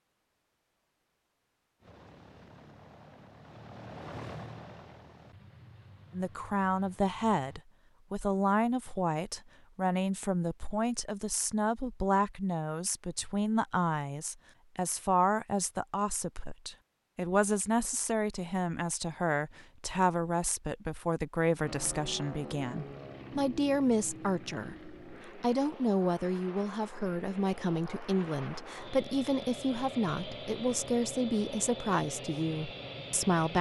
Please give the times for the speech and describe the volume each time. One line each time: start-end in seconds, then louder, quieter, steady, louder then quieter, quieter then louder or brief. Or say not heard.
6.1-33.5 steady.